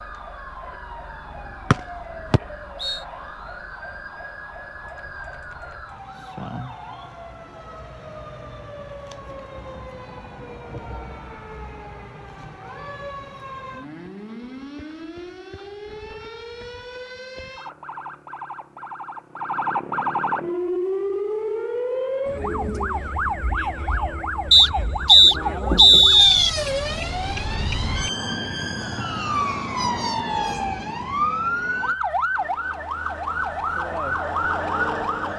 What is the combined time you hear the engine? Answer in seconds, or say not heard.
3 s.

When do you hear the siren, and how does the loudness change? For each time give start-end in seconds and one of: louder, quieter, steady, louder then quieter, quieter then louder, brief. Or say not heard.
0.0-35.3 louder.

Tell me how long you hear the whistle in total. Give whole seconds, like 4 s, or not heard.
3 s.